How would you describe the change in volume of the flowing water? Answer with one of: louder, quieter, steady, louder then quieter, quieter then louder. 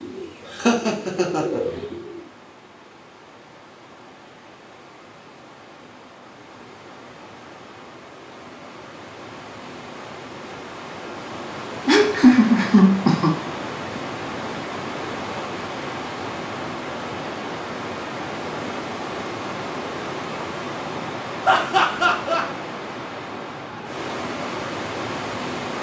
louder.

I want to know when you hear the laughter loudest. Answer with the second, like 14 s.
12 s.